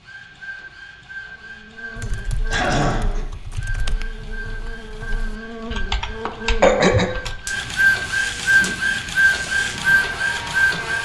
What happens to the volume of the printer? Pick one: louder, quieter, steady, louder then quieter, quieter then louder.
louder.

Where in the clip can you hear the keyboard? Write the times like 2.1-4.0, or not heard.
1.9-7.6.